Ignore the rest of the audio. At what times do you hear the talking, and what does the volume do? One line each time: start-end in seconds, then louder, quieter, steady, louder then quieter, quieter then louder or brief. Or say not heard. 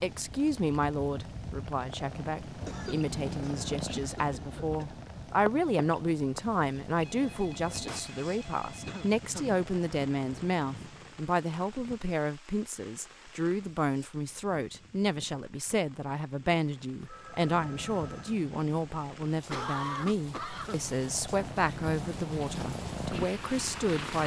0.0-24.2 steady.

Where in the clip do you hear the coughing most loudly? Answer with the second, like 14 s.
20 s.